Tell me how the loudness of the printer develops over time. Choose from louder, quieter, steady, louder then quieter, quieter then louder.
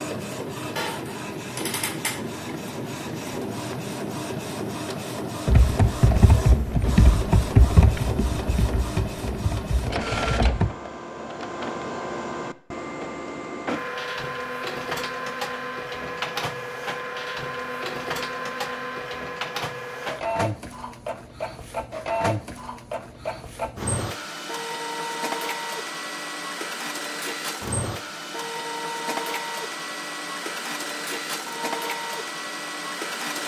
steady.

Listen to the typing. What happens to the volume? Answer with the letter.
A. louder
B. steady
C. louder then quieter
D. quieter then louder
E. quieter
E.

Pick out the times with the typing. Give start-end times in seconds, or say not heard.
5.5-10.7.